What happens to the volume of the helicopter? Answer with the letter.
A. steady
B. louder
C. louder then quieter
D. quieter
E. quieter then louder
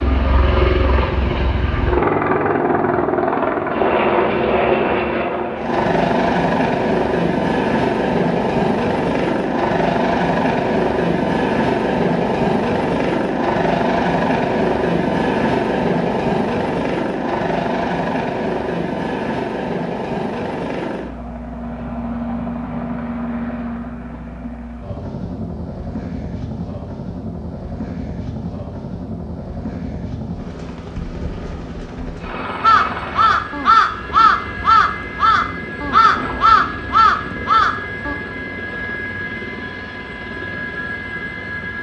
D.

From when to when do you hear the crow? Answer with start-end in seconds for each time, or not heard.
32.6-38.1.